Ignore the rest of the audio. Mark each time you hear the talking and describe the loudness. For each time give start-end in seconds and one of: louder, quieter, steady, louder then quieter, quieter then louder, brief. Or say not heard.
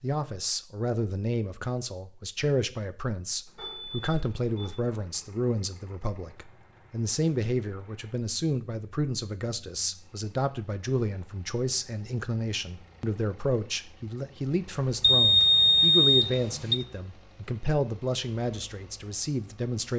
0.0-19.9 steady.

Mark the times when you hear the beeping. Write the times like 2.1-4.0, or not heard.
3.5-4.8, 15.0-16.8.